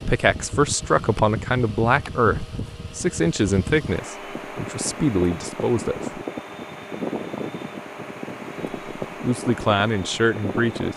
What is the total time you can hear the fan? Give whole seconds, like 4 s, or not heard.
11 s.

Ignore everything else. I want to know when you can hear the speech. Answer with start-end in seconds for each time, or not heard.
0.0-6.2, 8.6-10.9.